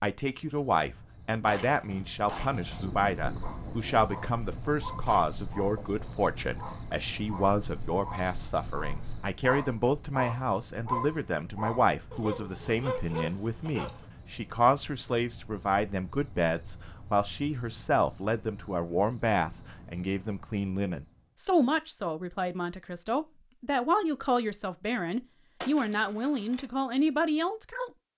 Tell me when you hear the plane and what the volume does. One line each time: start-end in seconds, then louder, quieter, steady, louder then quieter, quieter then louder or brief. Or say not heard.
not heard.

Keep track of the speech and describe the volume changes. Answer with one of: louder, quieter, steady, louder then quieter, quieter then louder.
steady.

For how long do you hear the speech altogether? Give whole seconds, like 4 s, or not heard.
28 s.